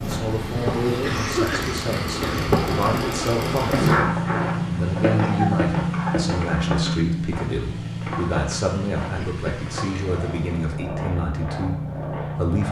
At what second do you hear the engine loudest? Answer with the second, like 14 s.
4 s.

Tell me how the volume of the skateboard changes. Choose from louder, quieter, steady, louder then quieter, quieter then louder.
quieter.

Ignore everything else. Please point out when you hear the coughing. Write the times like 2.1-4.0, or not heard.
1.0-2.6, 5.2-6.2, 9.2-10.2.